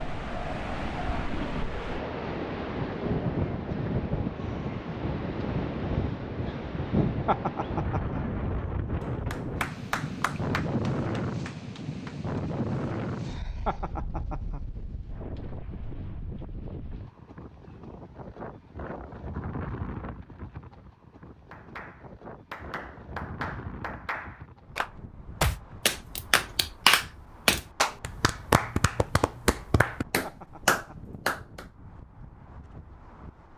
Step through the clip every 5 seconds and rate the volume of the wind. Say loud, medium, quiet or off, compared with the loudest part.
loud, loud, loud, medium, quiet, quiet, quiet.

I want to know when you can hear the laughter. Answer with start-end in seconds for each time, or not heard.
7.2-8.2, 13.7-14.6, 30.2-31.1.